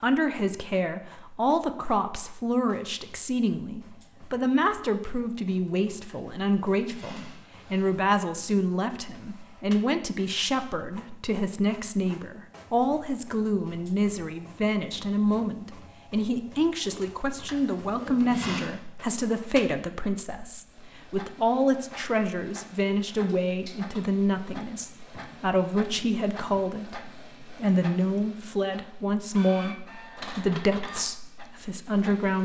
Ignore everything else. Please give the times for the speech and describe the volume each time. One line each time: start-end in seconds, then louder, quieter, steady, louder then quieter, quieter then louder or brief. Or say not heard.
0.0-32.4 steady.